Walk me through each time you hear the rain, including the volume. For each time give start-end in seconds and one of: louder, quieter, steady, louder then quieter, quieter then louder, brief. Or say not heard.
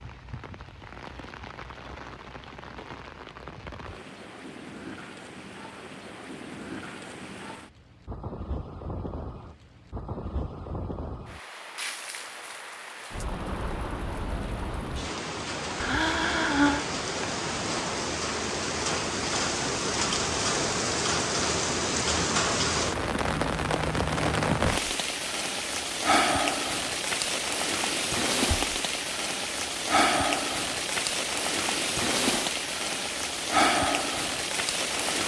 0.0-35.2 louder.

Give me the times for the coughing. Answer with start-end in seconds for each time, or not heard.
15.8-16.9.